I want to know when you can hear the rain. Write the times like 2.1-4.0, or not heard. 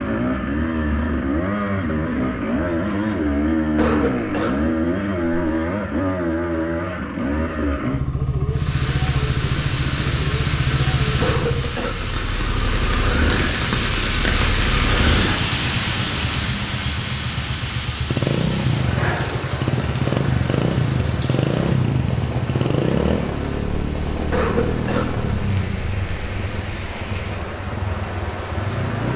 8.4-29.1.